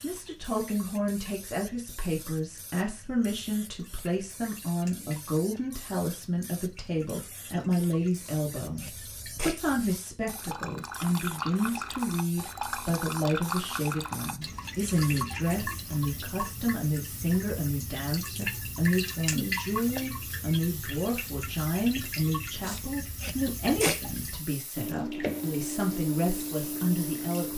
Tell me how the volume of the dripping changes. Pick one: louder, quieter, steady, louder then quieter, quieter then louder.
louder.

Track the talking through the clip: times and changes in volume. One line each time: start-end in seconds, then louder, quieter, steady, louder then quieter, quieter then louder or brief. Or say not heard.
0.0-27.5 steady.